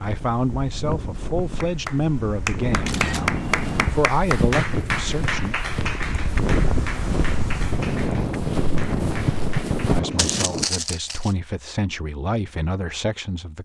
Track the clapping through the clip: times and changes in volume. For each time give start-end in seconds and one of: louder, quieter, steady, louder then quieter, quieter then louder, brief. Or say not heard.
1.6-10.2 quieter.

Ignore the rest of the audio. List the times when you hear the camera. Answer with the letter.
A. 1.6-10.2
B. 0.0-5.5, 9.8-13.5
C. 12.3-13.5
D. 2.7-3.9
D.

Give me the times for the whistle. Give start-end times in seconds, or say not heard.
not heard.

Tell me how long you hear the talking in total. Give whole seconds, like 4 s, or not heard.
9 s.